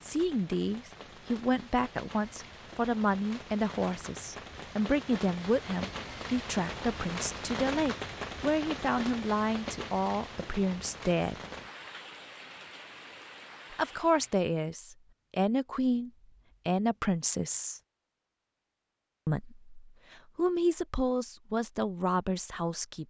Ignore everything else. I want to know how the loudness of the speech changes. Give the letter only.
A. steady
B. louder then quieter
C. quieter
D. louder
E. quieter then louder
A.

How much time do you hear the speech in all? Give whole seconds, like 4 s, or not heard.
19 s.